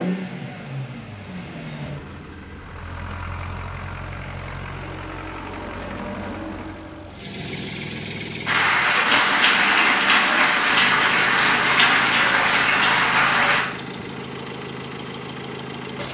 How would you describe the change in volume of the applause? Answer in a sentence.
The volume of the applause stays about the same.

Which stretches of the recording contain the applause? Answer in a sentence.
You can hear the applause from 8.4 to 13.7 s.